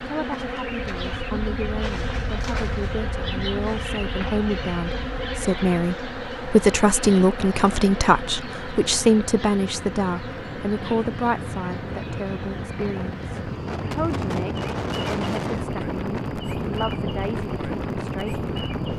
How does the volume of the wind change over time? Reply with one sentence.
The loudness of the wind goes up.